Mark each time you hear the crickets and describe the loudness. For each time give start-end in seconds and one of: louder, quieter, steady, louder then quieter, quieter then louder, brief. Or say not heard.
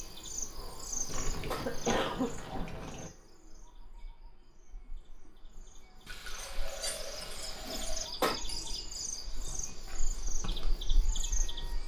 0.0-11.8 quieter then louder.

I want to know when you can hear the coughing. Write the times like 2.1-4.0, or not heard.
0.9-2.9, 7.7-8.4.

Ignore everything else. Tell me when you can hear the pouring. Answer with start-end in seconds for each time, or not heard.
1.1-3.1, 6.0-8.1.